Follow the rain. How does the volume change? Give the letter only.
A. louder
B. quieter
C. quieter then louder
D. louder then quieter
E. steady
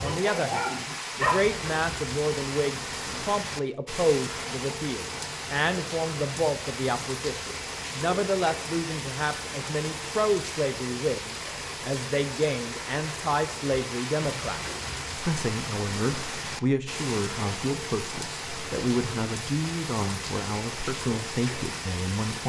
E.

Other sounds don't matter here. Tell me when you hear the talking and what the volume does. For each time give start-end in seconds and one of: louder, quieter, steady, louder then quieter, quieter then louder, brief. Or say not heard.
0.0-22.4 steady.